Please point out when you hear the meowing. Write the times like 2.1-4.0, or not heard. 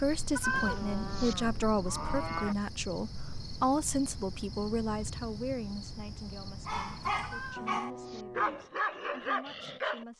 0.3-1.4, 7.2-8.2.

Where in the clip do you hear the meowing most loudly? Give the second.
1 s.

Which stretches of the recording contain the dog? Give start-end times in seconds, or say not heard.
6.7-10.1.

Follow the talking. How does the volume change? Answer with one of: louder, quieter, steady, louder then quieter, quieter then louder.
quieter.